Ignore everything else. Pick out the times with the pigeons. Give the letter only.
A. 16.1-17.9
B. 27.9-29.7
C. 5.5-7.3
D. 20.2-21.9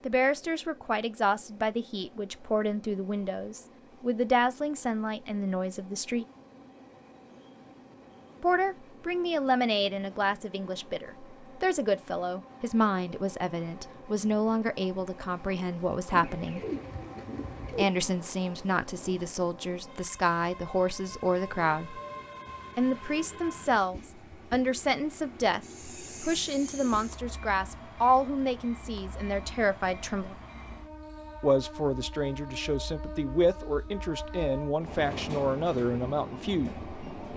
A.